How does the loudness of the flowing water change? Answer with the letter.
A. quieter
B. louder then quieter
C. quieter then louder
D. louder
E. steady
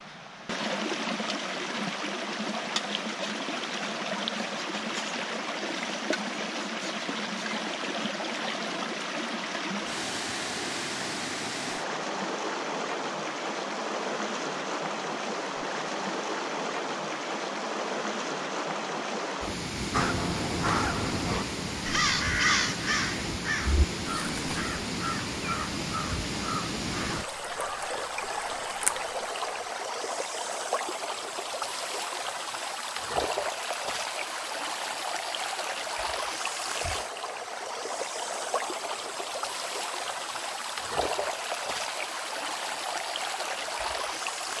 E.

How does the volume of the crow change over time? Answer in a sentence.
The volume of the crow goes down.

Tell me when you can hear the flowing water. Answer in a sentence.
The flowing water can be heard from 0.0 to 44.5 s.